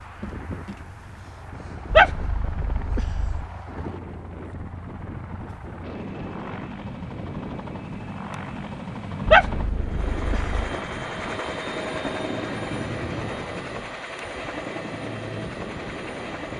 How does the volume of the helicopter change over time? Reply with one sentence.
The loudness of the helicopter goes up.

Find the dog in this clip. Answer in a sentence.
The dog can be heard from 1.9 to 3.5 s and from 9.2 to 10.7 s.